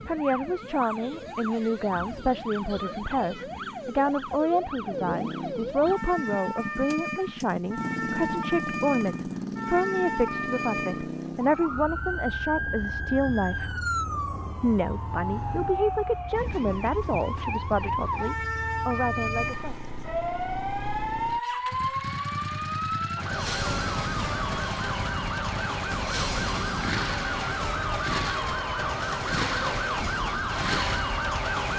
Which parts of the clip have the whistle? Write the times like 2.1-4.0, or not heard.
not heard.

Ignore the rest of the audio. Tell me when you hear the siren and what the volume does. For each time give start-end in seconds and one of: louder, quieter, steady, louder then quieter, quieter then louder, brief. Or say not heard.
0.0-31.7 louder.